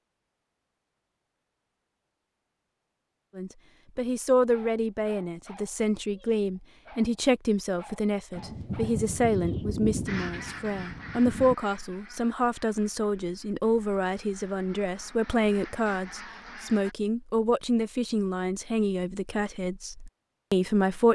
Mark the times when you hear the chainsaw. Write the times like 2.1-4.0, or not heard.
not heard.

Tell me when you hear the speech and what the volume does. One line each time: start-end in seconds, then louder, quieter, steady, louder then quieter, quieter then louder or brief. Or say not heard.
3.4-21.0 steady.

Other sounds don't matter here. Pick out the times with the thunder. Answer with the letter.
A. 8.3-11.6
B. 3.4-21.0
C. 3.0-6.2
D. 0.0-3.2
A.